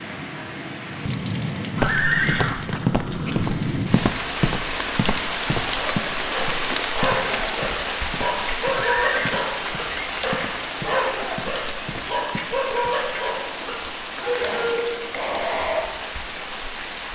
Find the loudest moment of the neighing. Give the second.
2 s.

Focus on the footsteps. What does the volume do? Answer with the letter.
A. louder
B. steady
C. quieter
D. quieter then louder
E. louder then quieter
C.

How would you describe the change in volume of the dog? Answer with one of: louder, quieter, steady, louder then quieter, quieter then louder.
steady.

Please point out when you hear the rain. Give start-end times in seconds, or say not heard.
0.0-17.1.